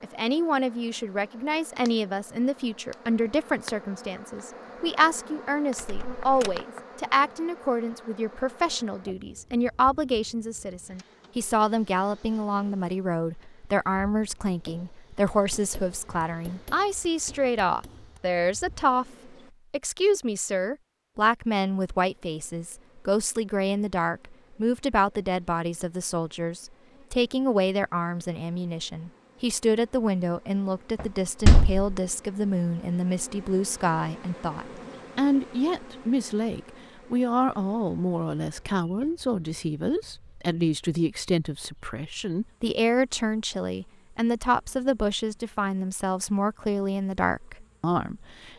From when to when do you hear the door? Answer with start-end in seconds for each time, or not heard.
5.8-6.5, 31.0-31.9.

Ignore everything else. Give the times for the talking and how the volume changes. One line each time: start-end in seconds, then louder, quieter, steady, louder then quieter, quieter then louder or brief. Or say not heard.
0.0-48.5 steady.